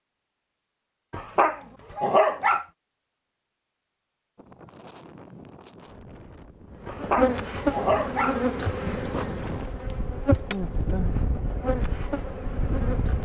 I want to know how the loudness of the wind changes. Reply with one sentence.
The volume of the wind goes up.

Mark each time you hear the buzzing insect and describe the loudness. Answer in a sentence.
The buzzing insect can be heard from 6.8 to 13.2 s, getting quieter.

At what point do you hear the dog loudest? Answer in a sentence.
The volume of the dog peaks at 2 seconds.